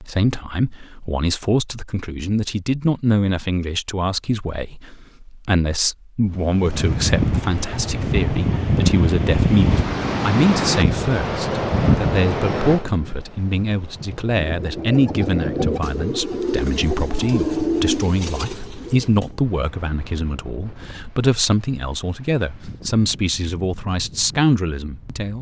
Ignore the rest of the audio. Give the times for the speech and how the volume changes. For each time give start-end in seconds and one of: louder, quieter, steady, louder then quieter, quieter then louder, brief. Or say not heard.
0.0-25.3 steady.